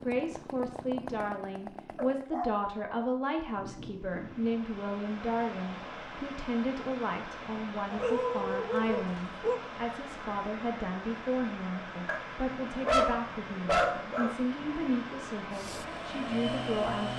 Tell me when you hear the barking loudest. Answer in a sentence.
The loudest moment of the barking is at 13 seconds.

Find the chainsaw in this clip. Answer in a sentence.
The chainsaw can be heard from 0.0 to 2.2 s and from 15.5 to 17.1 s.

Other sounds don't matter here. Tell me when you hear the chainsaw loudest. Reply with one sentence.
The volume of the chainsaw peaks at 17 seconds.